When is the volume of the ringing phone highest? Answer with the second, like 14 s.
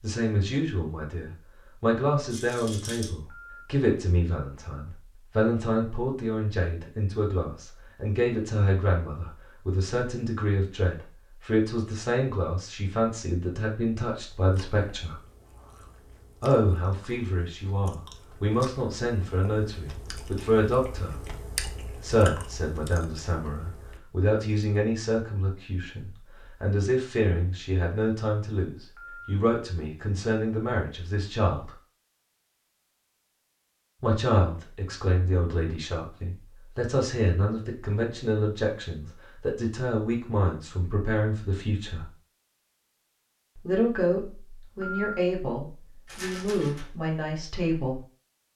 45 s.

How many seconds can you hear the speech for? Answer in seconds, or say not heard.
42 s.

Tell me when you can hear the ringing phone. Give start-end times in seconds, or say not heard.
3.1-3.6, 28.8-29.3, 44.6-45.1.